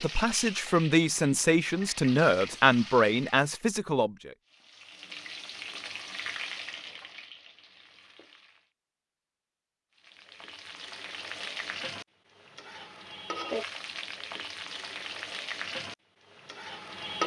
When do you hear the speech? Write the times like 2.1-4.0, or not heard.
0.0-4.3.